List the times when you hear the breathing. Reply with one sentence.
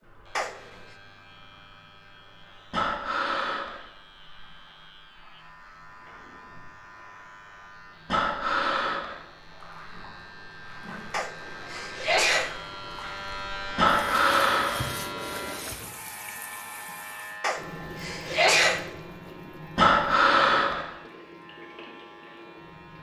You can hear the breathing from 2.7 to 3.8 s, from 8.1 to 9.2 s, from 13.8 to 14.8 s and from 19.8 to 20.9 s.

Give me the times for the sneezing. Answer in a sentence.
The sneezing can be heard from 0.3 to 0.8 s, from 11.1 to 12.6 s and from 17.4 to 18.9 s.